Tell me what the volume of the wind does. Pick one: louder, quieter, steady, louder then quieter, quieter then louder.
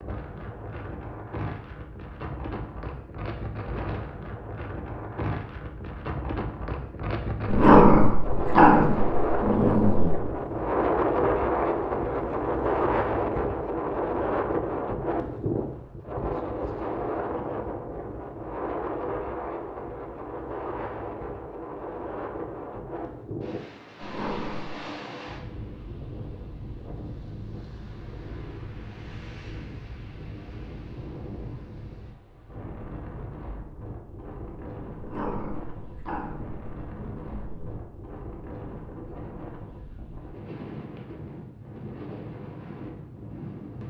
louder then quieter.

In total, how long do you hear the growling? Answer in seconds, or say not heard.
6 s.